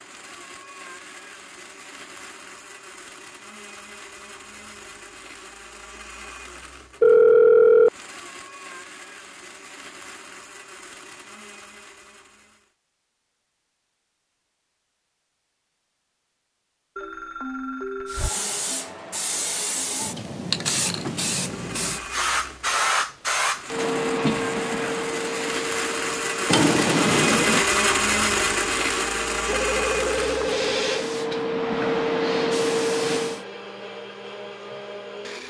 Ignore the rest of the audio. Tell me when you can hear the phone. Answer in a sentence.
The phone can be heard from 7.0 to 7.9 s, from 16.9 to 18.4 s and from 29.4 to 31.1 s.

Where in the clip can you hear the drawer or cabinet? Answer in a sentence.
You can hear the drawer or cabinet from 26.4 to 27.6 s.